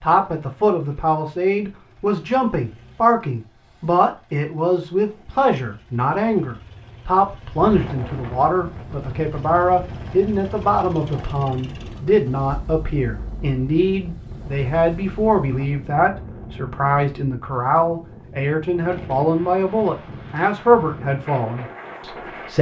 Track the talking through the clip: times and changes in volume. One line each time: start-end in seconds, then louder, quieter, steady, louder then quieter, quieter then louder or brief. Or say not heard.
0.0-22.5 steady.